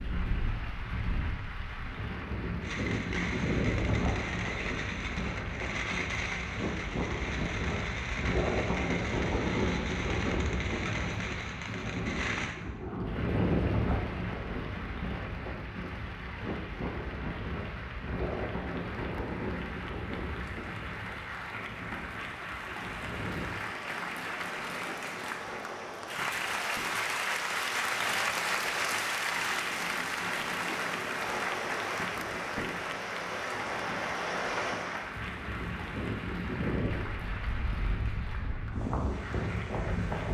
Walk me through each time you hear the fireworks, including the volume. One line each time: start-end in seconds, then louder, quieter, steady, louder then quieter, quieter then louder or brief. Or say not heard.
2.6-12.6 steady.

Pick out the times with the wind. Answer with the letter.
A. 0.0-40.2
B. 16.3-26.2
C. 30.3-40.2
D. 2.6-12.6
A.